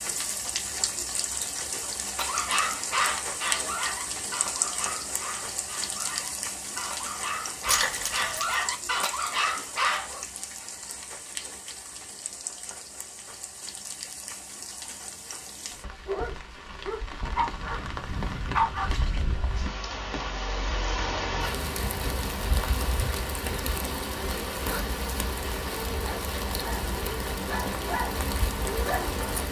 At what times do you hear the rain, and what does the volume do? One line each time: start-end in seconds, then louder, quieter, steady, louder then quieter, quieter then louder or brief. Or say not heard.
0.0-29.4 quieter then louder.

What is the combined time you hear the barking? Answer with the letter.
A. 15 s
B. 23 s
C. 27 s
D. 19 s
A.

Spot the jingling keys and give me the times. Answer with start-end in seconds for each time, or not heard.
7.7-8.6.